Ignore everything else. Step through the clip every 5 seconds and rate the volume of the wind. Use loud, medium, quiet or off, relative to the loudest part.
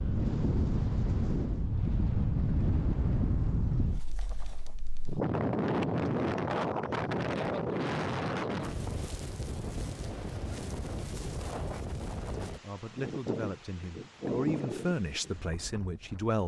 loud, loud, medium, quiet.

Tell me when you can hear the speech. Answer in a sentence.
The speech can be heard from 12.4 to 16.4 s.